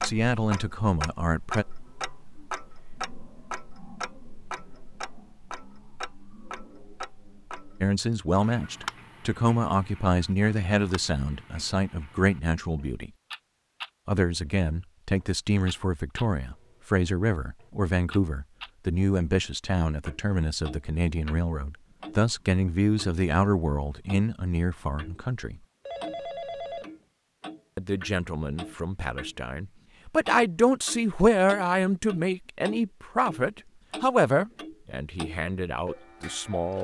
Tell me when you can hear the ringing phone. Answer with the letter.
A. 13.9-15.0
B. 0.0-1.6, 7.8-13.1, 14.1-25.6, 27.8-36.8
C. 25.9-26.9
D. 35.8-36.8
C.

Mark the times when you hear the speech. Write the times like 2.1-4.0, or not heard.
0.0-1.6, 7.8-13.1, 14.1-25.6, 27.8-36.8.